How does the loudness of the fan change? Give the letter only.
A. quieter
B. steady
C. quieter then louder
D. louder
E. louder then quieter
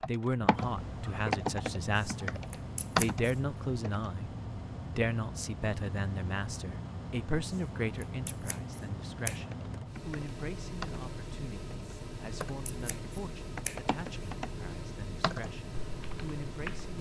B.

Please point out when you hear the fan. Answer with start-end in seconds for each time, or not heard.
0.0-16.9.